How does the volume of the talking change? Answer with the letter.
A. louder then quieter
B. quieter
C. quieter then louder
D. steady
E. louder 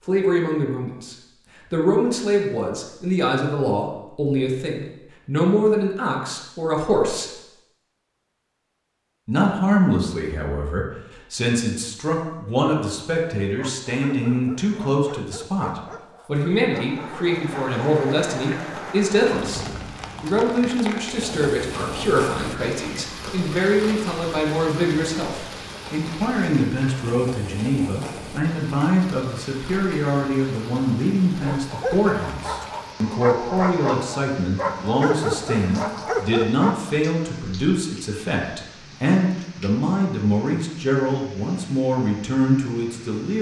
D.